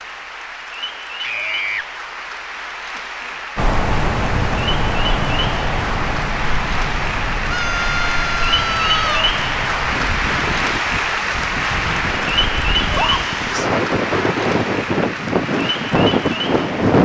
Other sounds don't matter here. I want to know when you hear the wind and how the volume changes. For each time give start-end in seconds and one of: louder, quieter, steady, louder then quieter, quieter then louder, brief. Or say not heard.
3.5-17.0 quieter then louder.